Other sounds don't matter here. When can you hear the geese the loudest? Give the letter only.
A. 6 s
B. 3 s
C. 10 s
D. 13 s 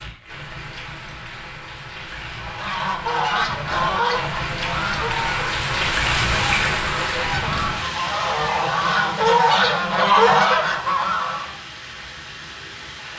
C.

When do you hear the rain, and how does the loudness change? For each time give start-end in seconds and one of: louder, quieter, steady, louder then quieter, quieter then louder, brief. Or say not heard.
0.0-13.1 louder then quieter.